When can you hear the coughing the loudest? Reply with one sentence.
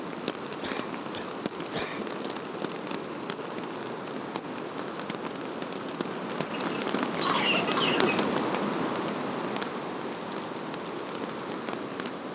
The volume of the coughing peaks at 7 seconds.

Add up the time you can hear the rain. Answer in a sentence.
You can hear the rain for 12 seconds altogether.